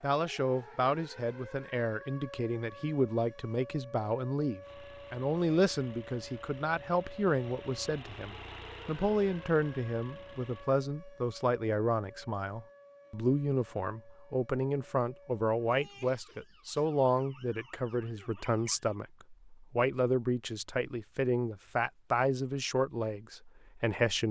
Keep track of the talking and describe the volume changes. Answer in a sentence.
The volume of the talking stays about the same.